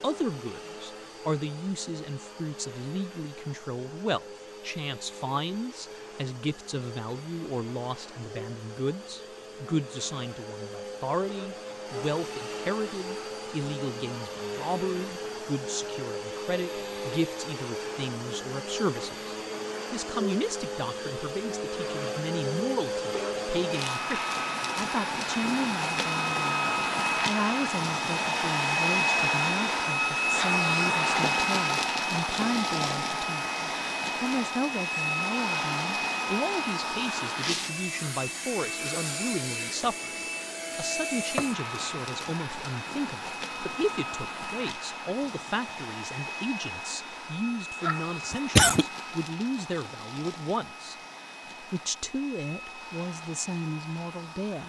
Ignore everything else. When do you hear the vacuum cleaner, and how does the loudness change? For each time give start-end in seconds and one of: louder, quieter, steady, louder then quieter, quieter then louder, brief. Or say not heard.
0.0-54.6 louder then quieter.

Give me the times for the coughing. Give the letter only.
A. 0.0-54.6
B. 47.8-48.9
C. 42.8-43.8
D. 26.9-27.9
B.